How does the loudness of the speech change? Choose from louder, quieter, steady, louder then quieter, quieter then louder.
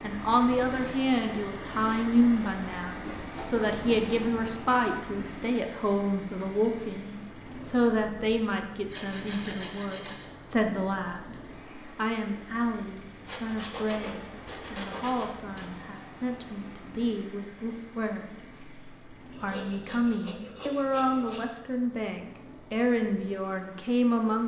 quieter then louder.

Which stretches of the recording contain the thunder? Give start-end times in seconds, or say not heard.
not heard.